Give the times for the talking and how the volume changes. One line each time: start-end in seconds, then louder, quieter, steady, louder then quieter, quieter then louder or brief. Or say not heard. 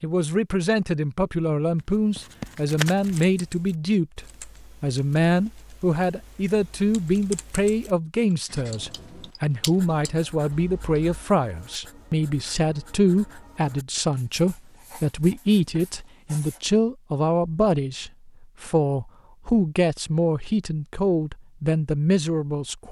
0.0-22.8 steady.